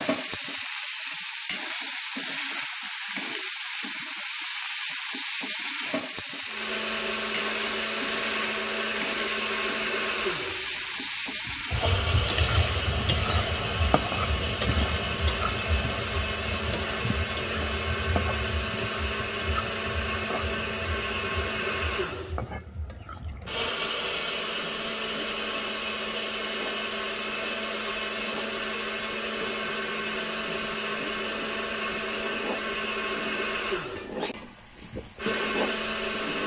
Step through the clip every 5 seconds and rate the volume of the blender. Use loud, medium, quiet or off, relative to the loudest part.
off, loud, loud, loud, loud, loud, loud, loud.